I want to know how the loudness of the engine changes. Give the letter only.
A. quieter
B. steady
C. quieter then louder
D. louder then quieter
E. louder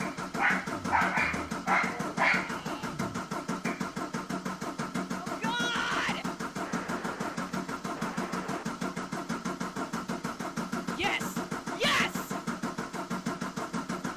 B.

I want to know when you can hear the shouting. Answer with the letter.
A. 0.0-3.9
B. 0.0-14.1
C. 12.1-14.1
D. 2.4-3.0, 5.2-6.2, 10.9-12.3
D.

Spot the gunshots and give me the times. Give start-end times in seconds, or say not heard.
6.6-8.7.